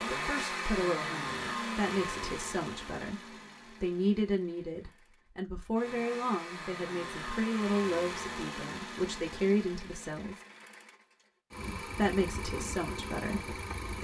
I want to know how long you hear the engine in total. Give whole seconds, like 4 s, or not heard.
14 s.